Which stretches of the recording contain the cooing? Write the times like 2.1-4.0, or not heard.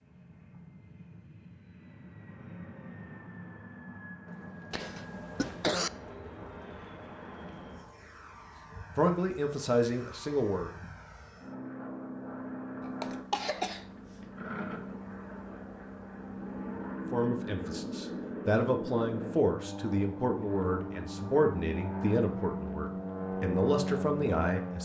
not heard.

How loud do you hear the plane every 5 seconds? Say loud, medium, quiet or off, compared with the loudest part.
quiet, quiet, medium, loud, loud.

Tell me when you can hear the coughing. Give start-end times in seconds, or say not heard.
4.7-5.9, 12.8-13.8.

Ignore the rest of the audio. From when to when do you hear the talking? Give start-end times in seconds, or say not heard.
8.9-10.7, 17.1-24.8.